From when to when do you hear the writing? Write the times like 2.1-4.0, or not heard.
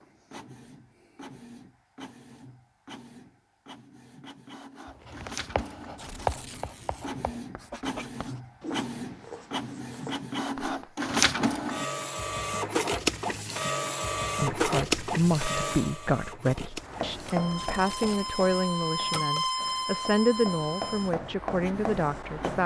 4.8-11.0, 16.8-22.6.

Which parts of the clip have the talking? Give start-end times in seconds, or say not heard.
14.4-22.6.